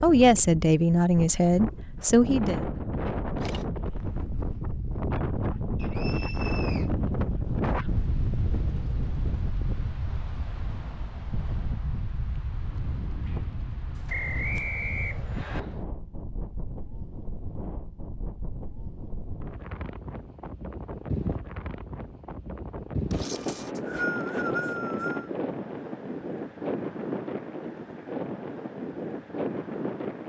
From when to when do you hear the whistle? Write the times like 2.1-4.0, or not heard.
5.8-6.9, 14.1-15.6, 23.4-25.3.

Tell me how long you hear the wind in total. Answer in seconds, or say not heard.
30 s.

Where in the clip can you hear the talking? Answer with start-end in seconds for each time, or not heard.
0.0-2.6.